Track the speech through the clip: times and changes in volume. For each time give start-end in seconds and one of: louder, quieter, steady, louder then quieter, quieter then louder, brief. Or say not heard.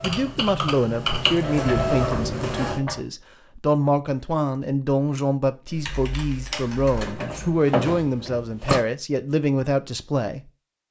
0.0-10.4 steady.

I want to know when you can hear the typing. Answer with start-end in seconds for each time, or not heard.
0.0-1.6, 5.7-7.2.